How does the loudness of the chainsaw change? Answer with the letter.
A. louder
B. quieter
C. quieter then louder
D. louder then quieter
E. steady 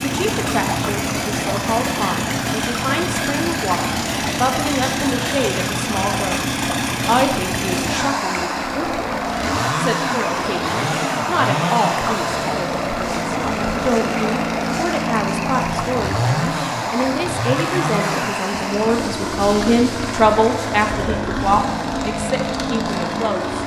E.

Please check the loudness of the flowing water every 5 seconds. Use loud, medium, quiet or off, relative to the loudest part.
loud, loud, loud, loud, off.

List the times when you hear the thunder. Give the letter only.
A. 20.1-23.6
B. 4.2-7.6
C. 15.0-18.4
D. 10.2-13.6
D.